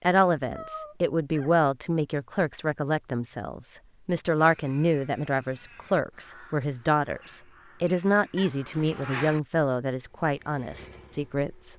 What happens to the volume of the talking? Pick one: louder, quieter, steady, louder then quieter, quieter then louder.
steady.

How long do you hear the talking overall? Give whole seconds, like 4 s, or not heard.
12 s.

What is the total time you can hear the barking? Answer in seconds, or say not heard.
not heard.